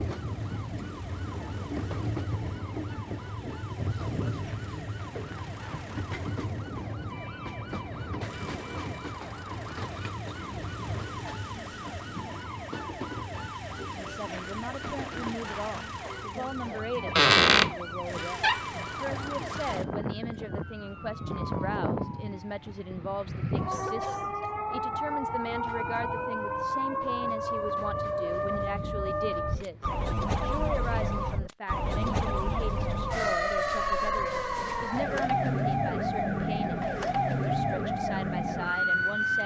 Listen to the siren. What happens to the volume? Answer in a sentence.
The volume of the siren goes up.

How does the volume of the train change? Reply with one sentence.
The loudness of the train goes down.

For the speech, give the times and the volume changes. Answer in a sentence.
The speech can be heard from 14.0 to 39.4 s, at a steady volume.